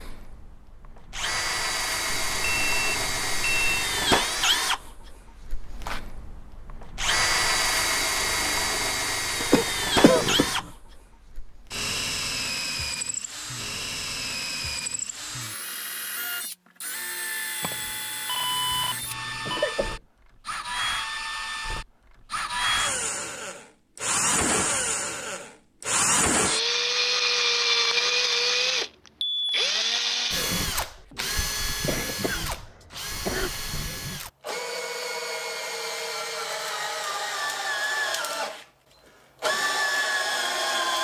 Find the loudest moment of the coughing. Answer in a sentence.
The loudest moment of the coughing is at 10 seconds.